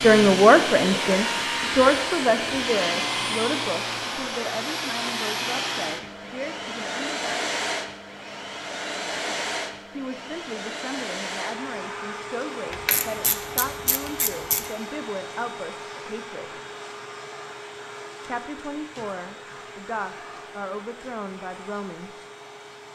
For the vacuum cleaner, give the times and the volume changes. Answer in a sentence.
You can hear the vacuum cleaner from 0.0 to 22.8 s, getting quieter.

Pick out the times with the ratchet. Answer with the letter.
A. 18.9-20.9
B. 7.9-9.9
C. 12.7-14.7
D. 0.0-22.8
C.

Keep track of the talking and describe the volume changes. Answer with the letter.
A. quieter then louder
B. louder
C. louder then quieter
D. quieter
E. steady
D.